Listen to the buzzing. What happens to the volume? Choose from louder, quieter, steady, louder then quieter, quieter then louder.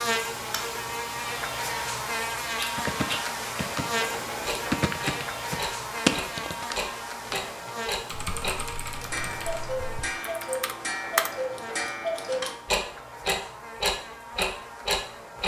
quieter.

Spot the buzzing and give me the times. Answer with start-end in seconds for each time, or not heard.
0.0-15.4.